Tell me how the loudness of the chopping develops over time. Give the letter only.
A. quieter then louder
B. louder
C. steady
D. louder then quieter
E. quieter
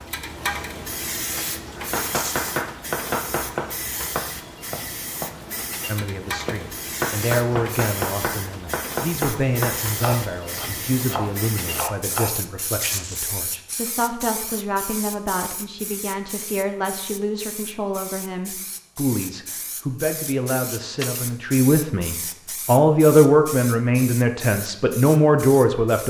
C.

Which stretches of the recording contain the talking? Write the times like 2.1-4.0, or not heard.
5.8-26.0.